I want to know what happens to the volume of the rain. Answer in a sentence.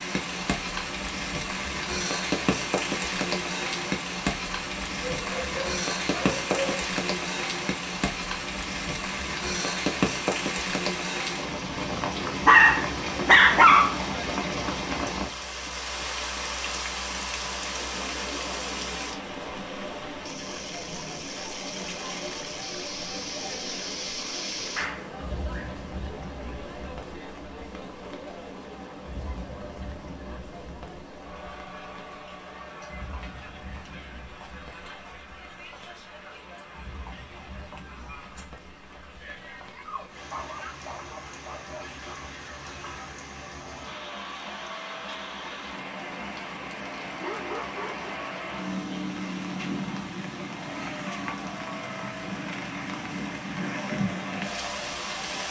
The volume of the rain goes down, then up.